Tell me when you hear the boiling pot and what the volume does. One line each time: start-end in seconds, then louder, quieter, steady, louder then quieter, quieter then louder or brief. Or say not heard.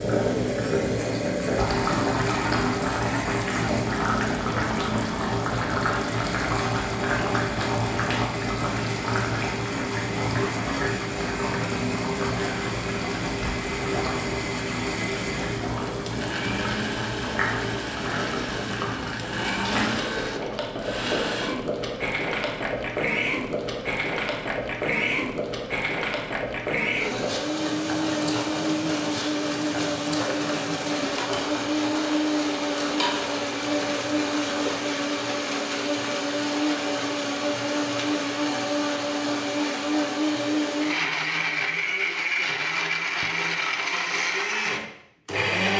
0.0-34.9 quieter.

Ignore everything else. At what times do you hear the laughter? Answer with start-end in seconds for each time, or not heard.
not heard.